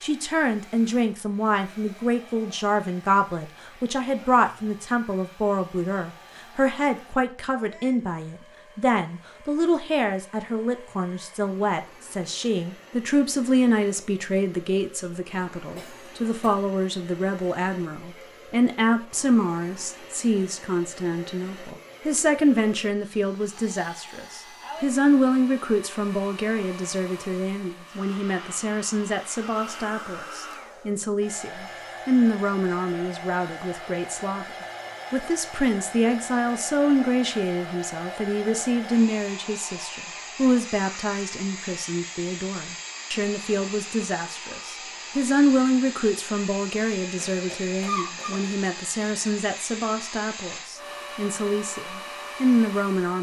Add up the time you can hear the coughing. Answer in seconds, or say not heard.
2 s.